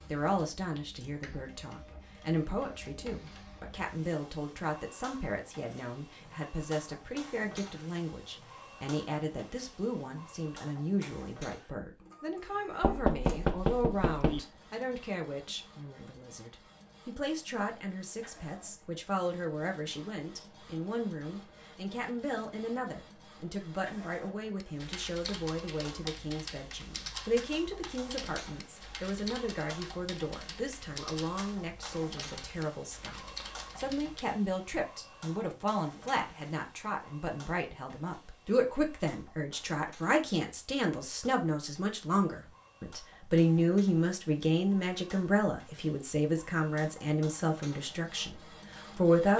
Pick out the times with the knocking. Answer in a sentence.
The knocking can be heard from 12.8 to 14.4 s.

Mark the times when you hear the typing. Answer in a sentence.
The typing can be heard from 24.6 to 34.2 s.